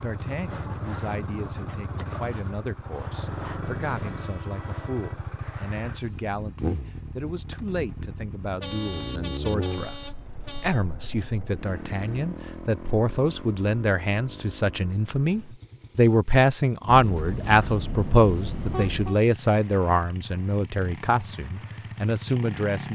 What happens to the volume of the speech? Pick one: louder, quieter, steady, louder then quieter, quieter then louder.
louder.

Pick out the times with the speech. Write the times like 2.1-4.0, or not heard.
0.0-22.9.